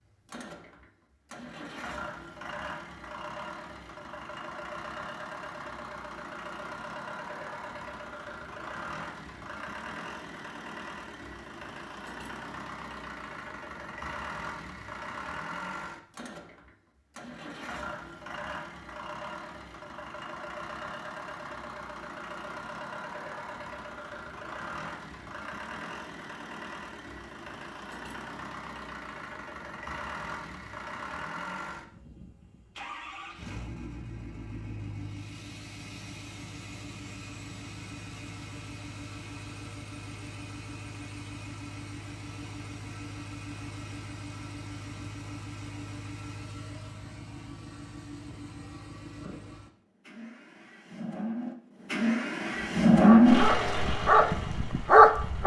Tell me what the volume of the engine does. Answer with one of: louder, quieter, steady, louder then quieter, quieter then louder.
louder.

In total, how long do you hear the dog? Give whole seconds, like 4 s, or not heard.
3 s.